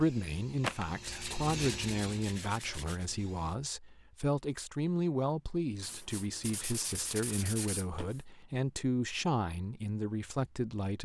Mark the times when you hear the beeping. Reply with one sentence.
You can't hear the beeping here.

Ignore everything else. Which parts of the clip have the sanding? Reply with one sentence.
The sanding can be heard from 0.6 to 3.0 s and from 5.8 to 8.2 s.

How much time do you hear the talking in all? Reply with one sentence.
You can hear the talking for 11 seconds altogether.